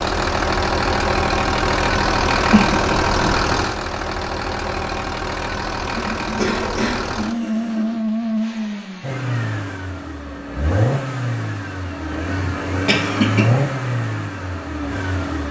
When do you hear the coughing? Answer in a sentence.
The coughing can be heard from 2.5 to 3.4 s, from 6.0 to 8.0 s and from 12.2 to 13.5 s.